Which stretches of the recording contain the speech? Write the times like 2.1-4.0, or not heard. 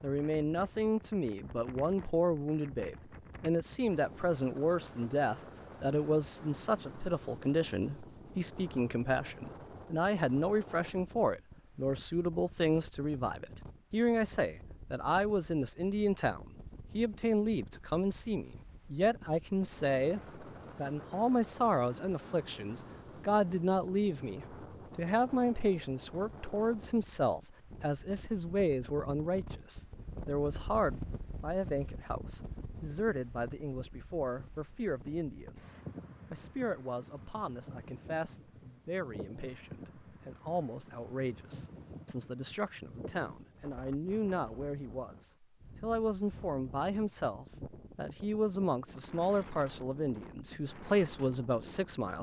0.0-52.1.